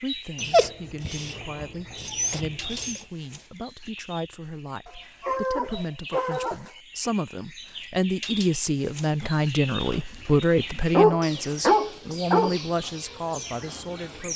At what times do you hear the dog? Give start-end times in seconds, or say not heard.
0.3-3.0, 4.8-6.8, 9.8-12.6.